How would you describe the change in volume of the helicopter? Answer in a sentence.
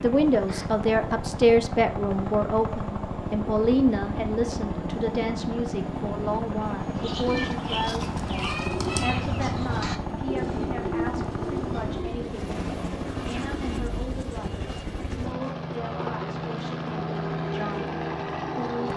The loudness of the helicopter stays about the same.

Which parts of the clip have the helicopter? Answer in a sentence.
You can hear the helicopter from 0.0 to 18.9 s.